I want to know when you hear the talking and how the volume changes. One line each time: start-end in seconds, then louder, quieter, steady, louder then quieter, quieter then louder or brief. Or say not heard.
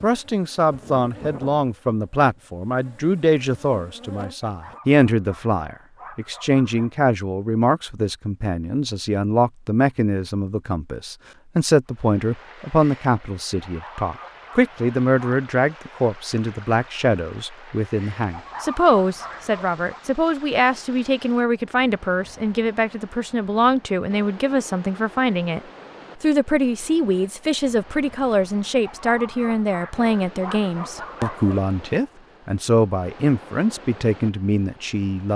0.0-25.6 steady
26.2-35.3 steady.